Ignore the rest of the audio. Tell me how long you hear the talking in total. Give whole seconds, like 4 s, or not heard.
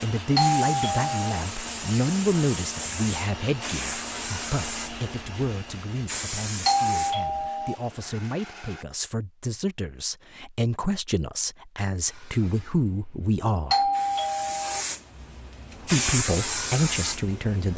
16 s.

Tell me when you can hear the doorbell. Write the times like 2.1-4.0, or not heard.
0.3-1.4, 6.7-7.8, 13.7-14.8.